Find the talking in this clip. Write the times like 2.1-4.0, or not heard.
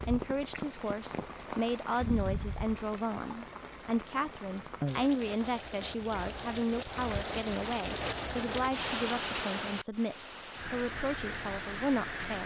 0.1-12.4.